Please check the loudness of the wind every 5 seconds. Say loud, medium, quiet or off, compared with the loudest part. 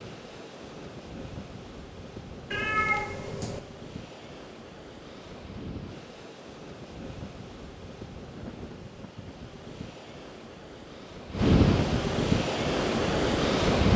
quiet, quiet, loud.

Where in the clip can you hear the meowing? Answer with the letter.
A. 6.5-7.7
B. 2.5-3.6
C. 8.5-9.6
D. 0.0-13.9
B.